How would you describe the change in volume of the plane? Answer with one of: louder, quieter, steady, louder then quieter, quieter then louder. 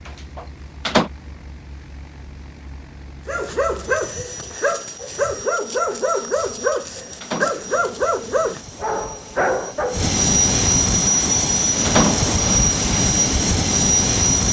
louder.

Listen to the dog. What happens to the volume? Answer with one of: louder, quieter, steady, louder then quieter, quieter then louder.
steady.